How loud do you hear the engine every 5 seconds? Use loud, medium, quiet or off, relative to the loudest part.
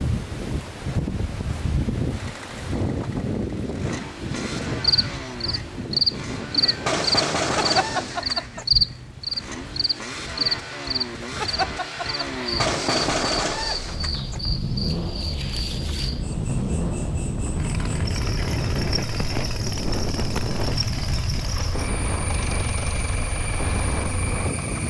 medium, medium, loud, loud, loud.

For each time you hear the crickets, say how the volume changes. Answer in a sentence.
You can hear the crickets from 4.7 to 24.8 s, getting quieter.